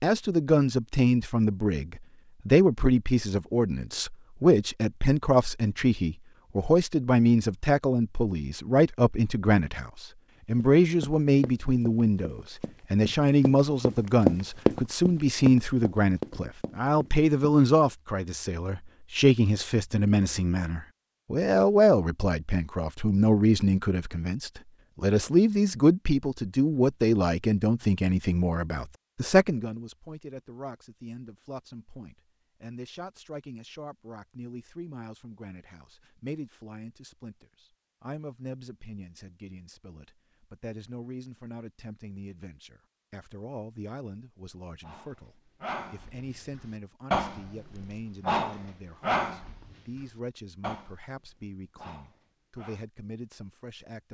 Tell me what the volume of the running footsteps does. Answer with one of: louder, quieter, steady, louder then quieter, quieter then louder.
louder then quieter.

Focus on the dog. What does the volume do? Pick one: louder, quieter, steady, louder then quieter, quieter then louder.
louder then quieter.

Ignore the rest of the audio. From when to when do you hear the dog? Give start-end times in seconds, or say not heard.
44.8-52.8.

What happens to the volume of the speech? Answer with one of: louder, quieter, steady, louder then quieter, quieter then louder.
quieter.